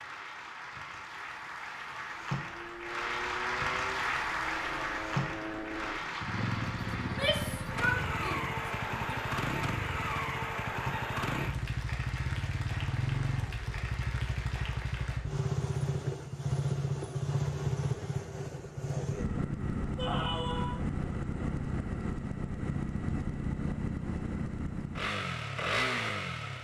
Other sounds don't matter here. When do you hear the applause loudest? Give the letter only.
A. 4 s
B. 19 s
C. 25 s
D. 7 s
A.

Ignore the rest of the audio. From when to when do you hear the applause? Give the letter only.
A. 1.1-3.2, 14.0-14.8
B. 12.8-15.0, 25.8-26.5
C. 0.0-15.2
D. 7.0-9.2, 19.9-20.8
C.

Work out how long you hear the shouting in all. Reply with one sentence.
The shouting can be heard for 3 seconds in total.